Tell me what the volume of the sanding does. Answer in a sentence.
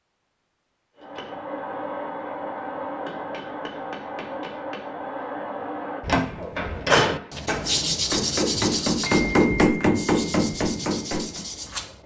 The volume of the sanding goes down.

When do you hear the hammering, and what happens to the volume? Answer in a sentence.
You can hear the hammering from 0.9 to 11.4 s, getting louder.